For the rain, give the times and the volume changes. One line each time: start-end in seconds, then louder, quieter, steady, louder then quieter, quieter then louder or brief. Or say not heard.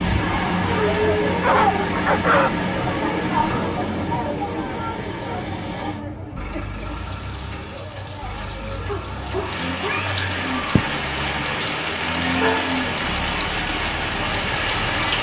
6.7-15.1 louder.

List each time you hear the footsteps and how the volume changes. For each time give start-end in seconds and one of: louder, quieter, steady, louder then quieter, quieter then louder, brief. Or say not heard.
not heard.